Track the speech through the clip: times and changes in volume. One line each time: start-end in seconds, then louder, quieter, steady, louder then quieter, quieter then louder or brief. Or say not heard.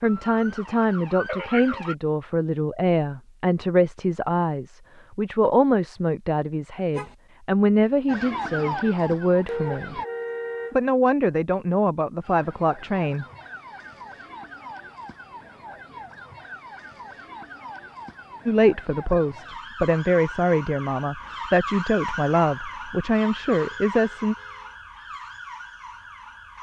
0.0-10.0 steady
10.7-13.2 brief
18.4-24.4 steady.